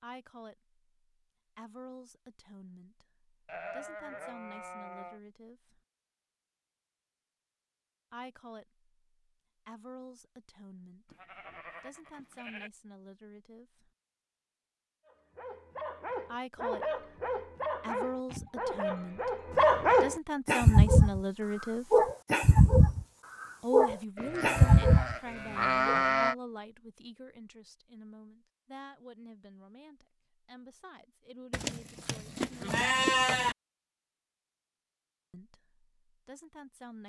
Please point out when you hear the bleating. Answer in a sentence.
The bleating can be heard from 3.5 to 5.2 s, from 11.1 to 12.7 s, from 18.2 to 19.9 s, from 24.1 to 26.4 s and from 31.5 to 33.5 s.